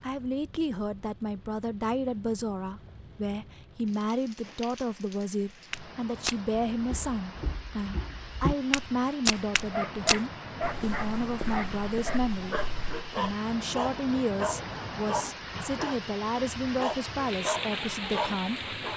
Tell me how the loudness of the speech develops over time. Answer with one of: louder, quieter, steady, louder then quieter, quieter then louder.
steady.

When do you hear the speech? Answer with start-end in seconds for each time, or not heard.
0.0-12.6, 13.2-18.9.